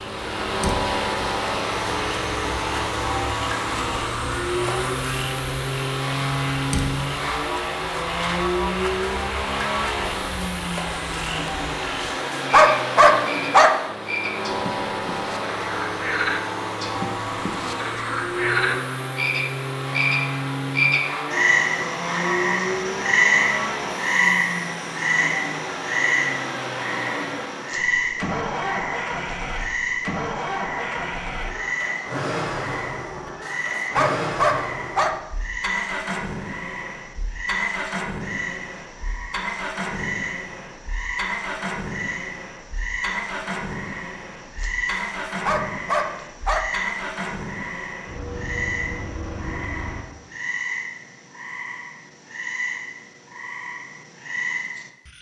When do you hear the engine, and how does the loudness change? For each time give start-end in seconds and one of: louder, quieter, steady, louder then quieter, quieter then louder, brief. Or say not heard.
0.0-50.3 quieter.